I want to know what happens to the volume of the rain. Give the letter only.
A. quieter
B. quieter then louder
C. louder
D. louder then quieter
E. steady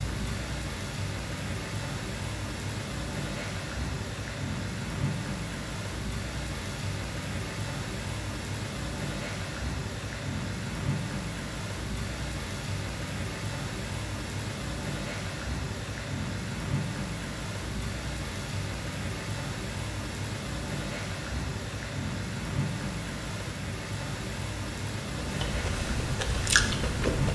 E.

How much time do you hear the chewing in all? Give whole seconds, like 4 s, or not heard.
2 s.